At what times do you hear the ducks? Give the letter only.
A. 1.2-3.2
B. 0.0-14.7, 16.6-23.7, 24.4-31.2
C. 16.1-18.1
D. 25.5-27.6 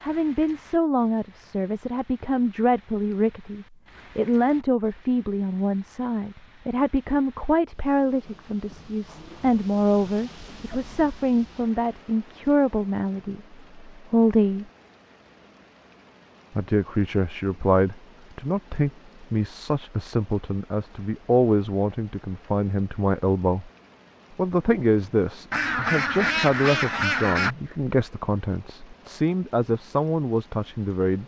D.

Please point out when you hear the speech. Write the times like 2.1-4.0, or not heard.
0.0-14.7, 16.6-23.7, 24.4-31.2.